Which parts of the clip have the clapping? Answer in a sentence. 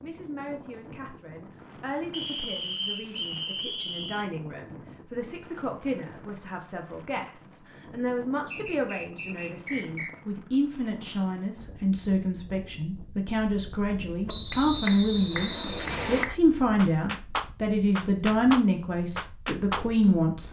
You can hear the clapping from 14.5 to 19.9 s.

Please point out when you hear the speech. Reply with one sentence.
The speech can be heard from 0.0 to 20.4 s.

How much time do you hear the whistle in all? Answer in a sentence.
The whistle can be heard for 6 seconds in total.